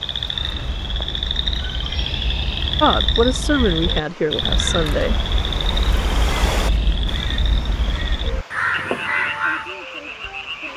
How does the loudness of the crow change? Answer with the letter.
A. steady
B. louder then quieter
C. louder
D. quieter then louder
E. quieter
C.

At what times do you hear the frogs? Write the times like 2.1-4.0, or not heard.
0.0-10.7.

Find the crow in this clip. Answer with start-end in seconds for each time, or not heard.
0.2-9.7.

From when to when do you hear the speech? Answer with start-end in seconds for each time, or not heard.
2.8-5.2.